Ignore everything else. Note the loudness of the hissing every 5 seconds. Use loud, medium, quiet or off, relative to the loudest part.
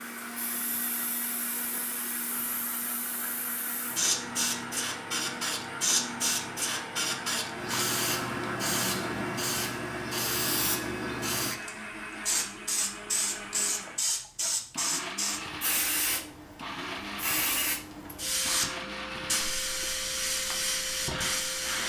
medium, loud, loud, loud, loud.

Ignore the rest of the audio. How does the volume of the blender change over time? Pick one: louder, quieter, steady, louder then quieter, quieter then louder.
steady.